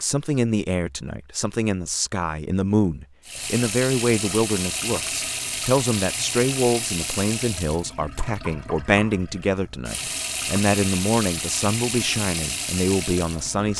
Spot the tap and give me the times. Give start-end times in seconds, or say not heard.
3.2-13.7.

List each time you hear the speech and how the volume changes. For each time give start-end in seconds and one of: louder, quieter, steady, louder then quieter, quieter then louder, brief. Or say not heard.
0.0-13.7 steady.